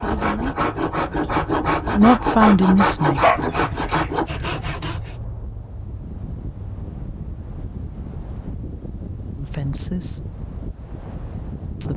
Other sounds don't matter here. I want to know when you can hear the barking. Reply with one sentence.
The barking can be heard from 3.1 to 4.9 s.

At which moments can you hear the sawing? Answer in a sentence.
You can hear the sawing from 0.0 to 5.2 s.